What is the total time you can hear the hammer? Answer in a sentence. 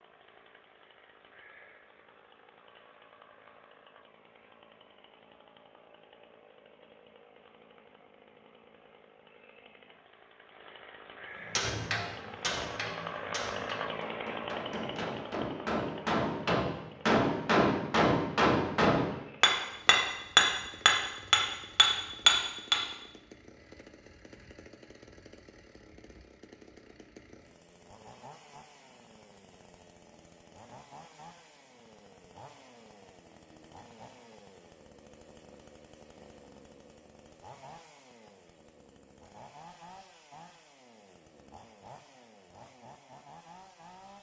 You can hear the hammer for 11 seconds altogether.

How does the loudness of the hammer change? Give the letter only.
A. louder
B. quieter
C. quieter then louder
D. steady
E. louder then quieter
A.